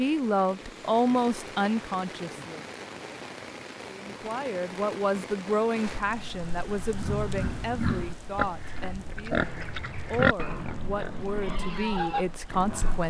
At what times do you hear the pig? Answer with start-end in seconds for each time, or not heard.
6.7-13.0.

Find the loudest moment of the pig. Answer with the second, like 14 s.
10 s.